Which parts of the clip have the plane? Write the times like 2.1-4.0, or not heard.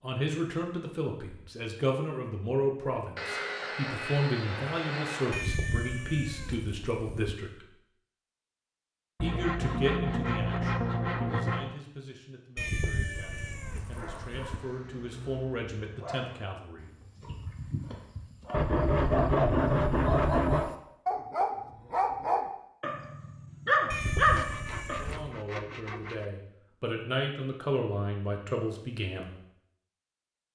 not heard.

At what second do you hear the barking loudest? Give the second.
24 s.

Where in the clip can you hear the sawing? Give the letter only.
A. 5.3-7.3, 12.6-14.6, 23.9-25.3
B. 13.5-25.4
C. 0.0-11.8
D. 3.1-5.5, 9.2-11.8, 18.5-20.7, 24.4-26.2
D.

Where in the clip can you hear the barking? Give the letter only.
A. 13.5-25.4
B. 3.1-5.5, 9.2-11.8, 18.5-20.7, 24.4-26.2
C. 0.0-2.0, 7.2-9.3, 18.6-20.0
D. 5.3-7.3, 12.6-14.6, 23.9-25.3
A.